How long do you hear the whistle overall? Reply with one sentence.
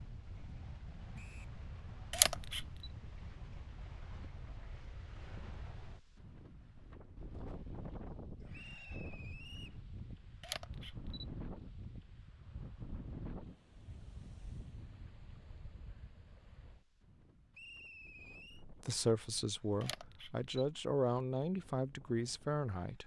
You can hear the whistle for 3 seconds altogether.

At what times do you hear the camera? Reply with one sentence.
The camera can be heard from 2.1 to 2.6 s, from 10.4 to 11.3 s and from 19.8 to 20.8 s.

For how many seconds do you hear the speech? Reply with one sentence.
You can hear the speech for 4 seconds altogether.